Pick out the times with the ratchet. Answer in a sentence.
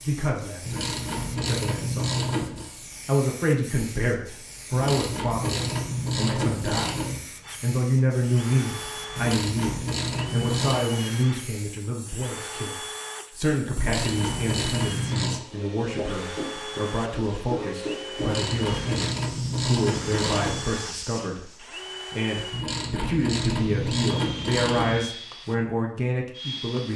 You can hear the ratchet from 0.7 to 2.7 s, from 4.7 to 7.2 s, from 9.2 to 10.8 s, from 13.8 to 15.4 s, from 18.1 to 20.7 s and from 22.5 to 25.0 s.